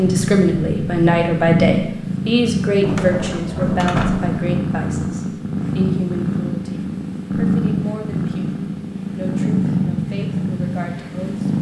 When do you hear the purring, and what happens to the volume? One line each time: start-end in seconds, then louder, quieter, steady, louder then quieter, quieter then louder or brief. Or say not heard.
0.0-11.5 steady.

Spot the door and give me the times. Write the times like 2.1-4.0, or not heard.
2.8-4.4.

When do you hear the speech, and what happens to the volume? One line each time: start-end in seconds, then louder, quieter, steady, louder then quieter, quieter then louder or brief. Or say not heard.
0.0-8.6 quieter
9.2-11.5 brief.